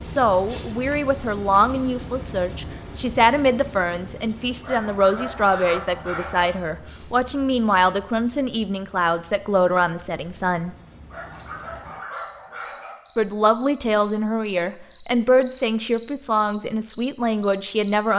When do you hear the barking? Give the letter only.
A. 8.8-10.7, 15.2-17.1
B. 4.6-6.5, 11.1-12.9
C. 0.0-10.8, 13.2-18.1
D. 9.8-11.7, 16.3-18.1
B.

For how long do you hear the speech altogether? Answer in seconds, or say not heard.
16 s.